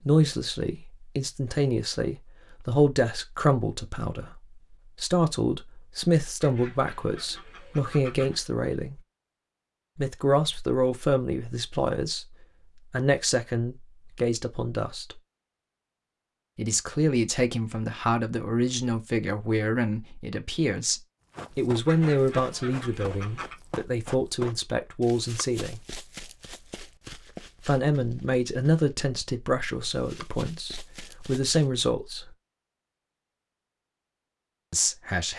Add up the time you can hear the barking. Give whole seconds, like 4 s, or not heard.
not heard.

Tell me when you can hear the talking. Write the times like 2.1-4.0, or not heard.
0.1-9.0, 9.9-15.2, 16.6-25.8, 27.6-32.3, 34.7-35.3.